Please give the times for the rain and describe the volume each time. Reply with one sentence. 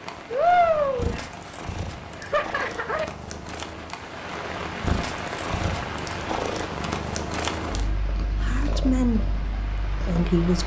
The rain can be heard from 0.0 to 10.6 s, getting quieter.